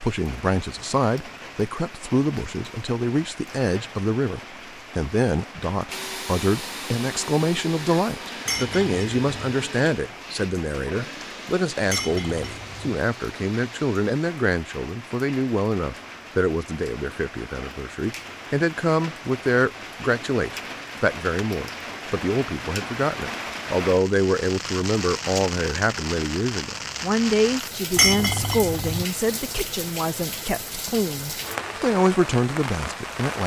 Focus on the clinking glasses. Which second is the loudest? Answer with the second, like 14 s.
28 s.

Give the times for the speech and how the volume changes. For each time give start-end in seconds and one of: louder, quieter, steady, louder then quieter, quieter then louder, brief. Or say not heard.
0.0-33.4 steady.